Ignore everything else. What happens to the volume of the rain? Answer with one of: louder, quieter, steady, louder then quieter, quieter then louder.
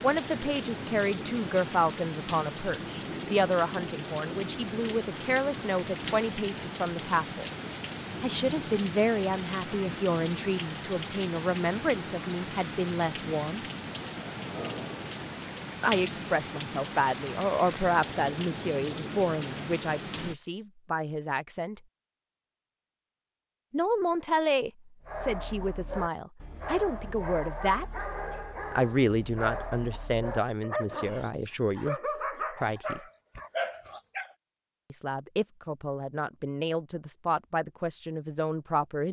steady.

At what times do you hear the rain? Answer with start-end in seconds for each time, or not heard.
0.0-20.4.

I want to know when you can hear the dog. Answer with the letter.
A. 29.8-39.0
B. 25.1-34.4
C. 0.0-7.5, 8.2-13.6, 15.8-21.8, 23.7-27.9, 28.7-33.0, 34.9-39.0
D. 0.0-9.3
B.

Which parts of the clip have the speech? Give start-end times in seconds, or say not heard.
0.0-7.5, 8.2-13.6, 15.8-21.8, 23.7-27.9, 28.7-33.0, 34.9-39.0.